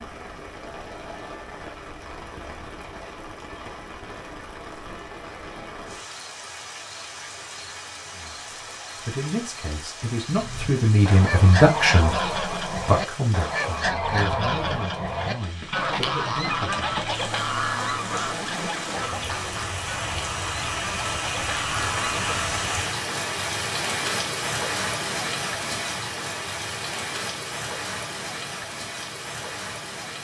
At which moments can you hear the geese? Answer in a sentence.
You can hear the geese from 10.3 to 22.6 s.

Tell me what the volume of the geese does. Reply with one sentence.
The volume of the geese goes down.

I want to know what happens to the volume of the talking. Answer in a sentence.
The volume of the talking goes up, then down.